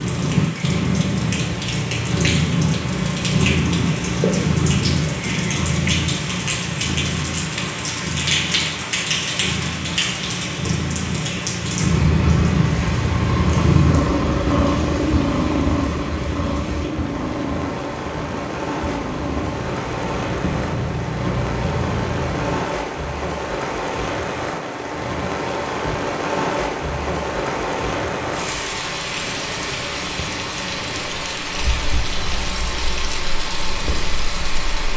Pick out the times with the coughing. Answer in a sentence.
The coughing can't be heard in this clip.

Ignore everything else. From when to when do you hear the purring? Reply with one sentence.
The purring can be heard from 0.0 to 22.8 s and from 29.1 to 34.9 s.